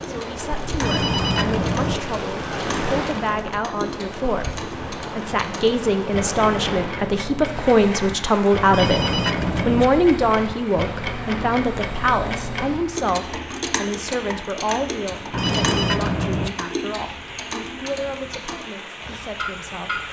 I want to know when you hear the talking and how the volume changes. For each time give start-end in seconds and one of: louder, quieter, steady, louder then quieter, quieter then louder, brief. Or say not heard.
0.1-20.0 louder then quieter.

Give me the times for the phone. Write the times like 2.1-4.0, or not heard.
0.8-2.0, 8.7-9.8, 15.3-16.5.